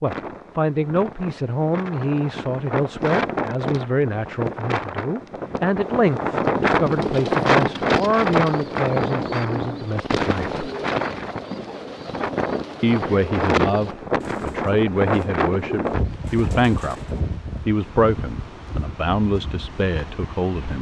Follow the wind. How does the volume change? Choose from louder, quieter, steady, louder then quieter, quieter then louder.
louder then quieter.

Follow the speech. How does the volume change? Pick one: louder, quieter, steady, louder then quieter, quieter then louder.
steady.